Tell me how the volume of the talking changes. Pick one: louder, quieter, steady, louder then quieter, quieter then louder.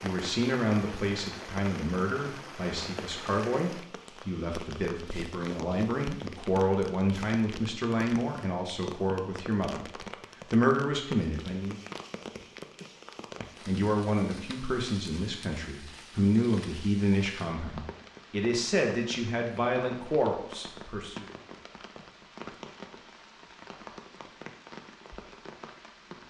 steady.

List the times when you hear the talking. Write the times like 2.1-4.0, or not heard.
0.0-11.8, 13.7-21.2.